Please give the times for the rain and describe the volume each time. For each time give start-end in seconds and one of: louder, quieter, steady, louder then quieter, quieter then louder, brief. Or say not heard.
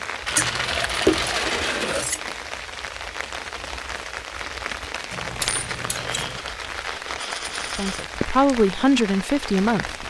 0.0-10.0 steady.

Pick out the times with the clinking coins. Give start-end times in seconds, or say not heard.
0.2-2.0, 5.4-8.1.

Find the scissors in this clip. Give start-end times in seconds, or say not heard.
0.3-2.2, 5.1-6.4.